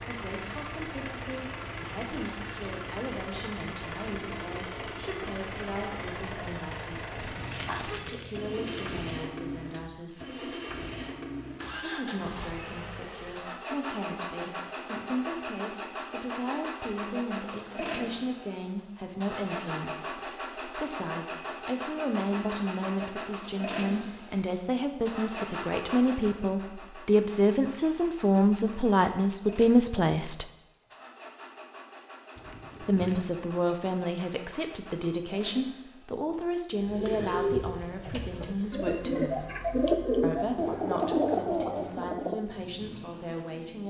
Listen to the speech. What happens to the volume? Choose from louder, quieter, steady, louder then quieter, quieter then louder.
louder then quieter.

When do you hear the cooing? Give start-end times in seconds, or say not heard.
36.9-42.5.